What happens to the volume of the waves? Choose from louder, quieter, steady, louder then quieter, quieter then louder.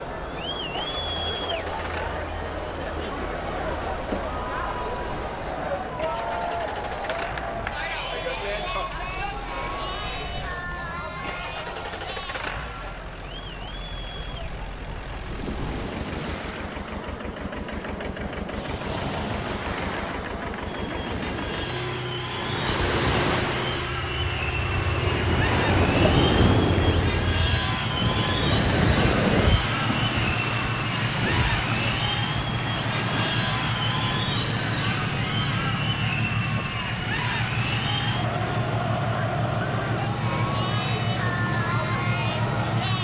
louder then quieter.